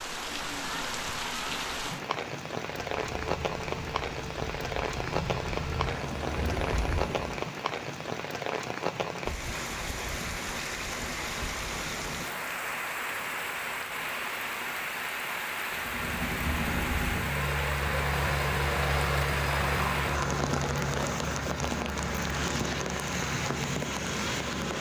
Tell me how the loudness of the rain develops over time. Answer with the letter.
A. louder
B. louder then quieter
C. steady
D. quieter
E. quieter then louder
C.